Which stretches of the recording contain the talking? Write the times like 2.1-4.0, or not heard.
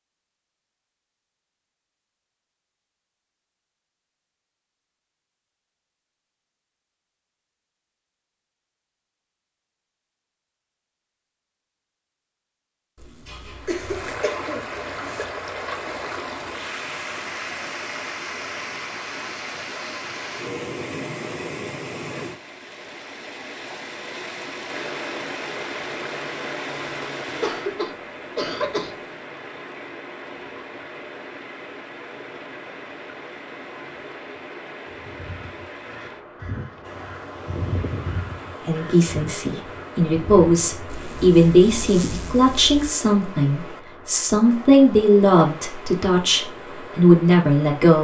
38.6-47.9.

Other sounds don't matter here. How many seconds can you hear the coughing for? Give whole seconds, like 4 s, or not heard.
4 s.